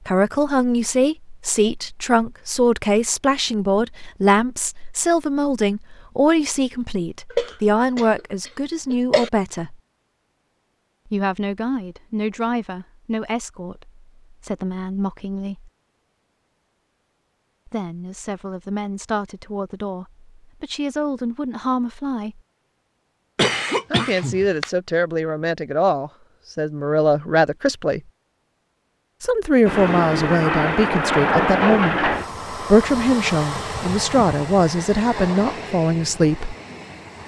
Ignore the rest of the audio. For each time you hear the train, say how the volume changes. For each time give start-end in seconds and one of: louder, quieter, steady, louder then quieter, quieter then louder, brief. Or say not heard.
29.6-37.2 quieter.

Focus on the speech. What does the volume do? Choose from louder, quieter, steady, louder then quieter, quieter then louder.
quieter then louder.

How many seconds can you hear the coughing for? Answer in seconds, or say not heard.
3 s.